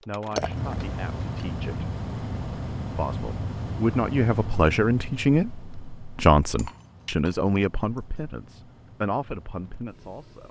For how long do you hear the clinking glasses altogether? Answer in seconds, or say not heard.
2 s.